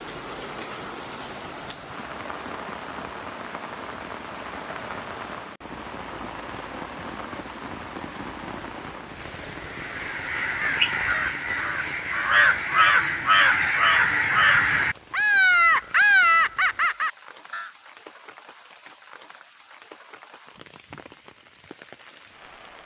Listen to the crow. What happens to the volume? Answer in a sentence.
The loudness of the crow goes up.